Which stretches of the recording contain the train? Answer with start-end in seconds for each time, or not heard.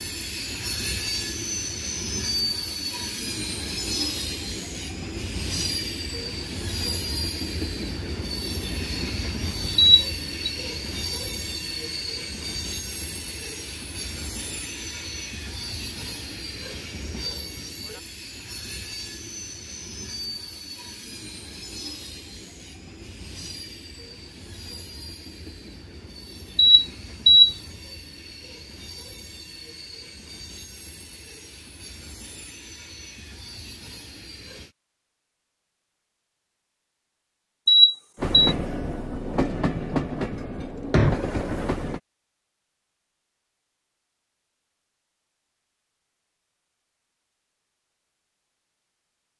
0.0-34.8, 38.1-42.0.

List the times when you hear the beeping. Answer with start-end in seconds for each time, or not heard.
9.8-10.5, 26.6-27.6, 37.6-38.5.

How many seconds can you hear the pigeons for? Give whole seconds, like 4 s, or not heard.
not heard.